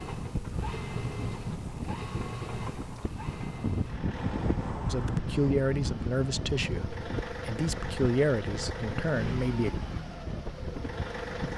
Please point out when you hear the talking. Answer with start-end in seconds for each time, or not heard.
4.9-9.7.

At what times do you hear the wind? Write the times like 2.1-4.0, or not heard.
0.0-11.5.